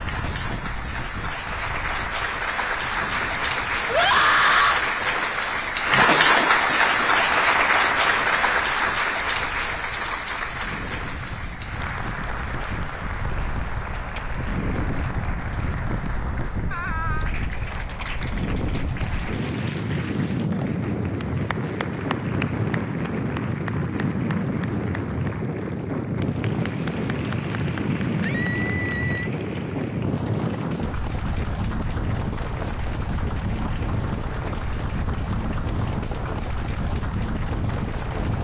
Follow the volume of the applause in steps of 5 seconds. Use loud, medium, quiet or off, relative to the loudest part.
medium, loud, quiet, quiet, quiet, quiet, quiet, quiet.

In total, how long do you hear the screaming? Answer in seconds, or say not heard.
3 s.